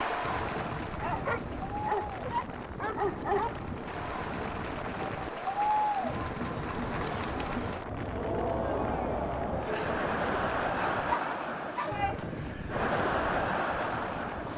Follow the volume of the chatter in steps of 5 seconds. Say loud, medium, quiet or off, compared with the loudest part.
medium, loud, loud.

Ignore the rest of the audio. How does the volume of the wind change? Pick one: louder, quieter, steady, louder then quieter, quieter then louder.
steady.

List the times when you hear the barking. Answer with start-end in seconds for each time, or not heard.
1.0-3.6, 10.8-12.2.